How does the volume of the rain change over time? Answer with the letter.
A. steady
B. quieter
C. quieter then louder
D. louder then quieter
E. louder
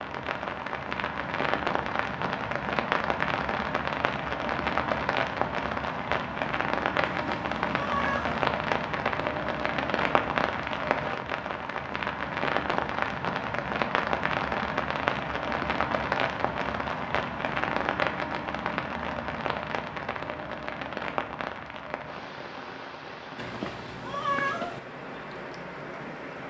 B.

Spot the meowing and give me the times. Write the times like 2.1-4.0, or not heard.
7.0-8.4, 23.4-24.8.